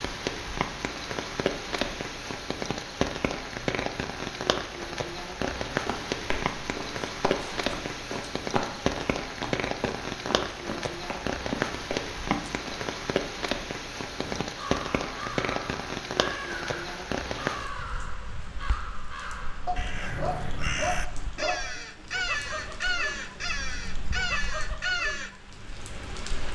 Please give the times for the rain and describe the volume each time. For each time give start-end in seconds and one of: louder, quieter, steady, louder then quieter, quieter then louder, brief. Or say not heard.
0.0-26.4 quieter.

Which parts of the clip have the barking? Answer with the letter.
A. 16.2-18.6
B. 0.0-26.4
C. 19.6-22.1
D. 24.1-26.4
C.